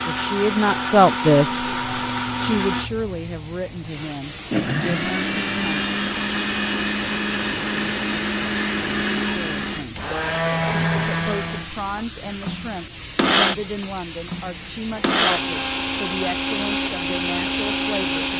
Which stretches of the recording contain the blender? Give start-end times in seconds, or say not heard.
0.0-2.9, 4.5-18.3.